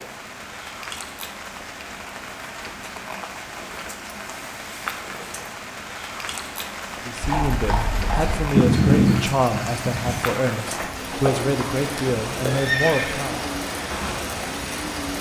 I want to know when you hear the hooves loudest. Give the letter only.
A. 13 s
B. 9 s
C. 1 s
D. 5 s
B.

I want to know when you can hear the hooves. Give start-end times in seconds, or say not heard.
7.2-14.2.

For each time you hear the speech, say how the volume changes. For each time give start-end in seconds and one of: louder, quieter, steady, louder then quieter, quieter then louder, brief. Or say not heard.
7.0-13.4 steady.